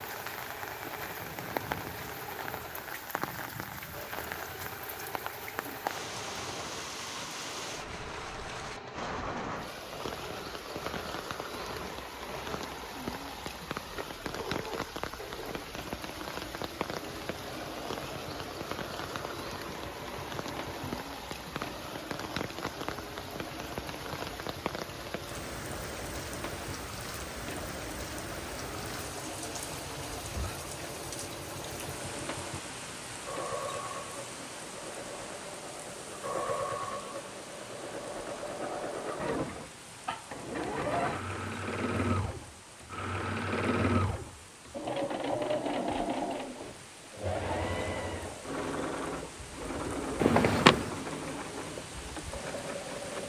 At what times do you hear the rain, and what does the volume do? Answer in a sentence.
You can hear the rain from 0.0 to 53.2 s, getting quieter.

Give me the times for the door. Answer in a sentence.
You can hear the door from 50.2 to 51.0 s.